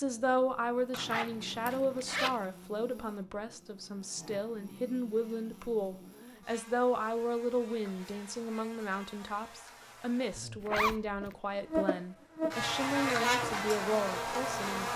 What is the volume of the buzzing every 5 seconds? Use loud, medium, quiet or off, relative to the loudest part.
quiet, quiet, loud.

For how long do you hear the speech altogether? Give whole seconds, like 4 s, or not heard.
15 s.